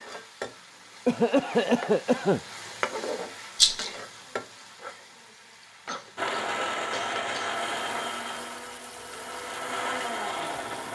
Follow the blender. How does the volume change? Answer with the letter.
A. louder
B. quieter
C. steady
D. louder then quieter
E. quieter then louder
E.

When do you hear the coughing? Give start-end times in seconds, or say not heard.
1.1-2.4, 5.8-8.1.